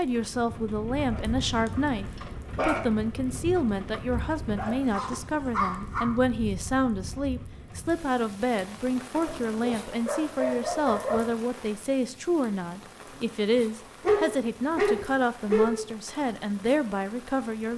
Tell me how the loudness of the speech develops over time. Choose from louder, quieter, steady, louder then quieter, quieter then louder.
steady.